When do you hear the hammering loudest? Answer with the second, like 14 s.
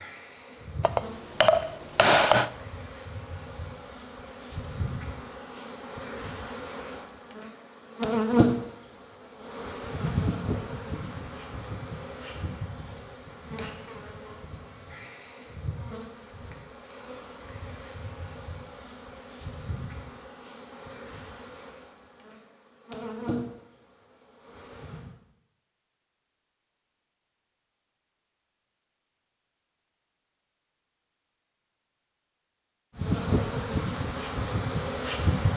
2 s.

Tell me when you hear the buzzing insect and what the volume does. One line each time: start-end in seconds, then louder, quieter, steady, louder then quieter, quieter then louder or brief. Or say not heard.
0.0-25.1 louder then quieter
33.0-35.5 brief.